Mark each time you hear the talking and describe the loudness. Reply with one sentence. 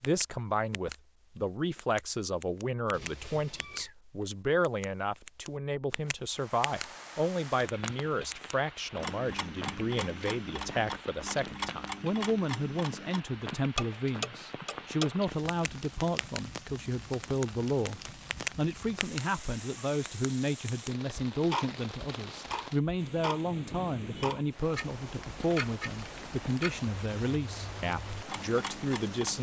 You can hear the talking from 0.0 to 29.3 s, at a steady volume.